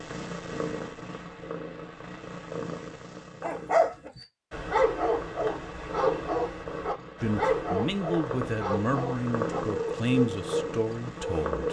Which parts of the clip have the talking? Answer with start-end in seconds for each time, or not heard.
7.2-11.6.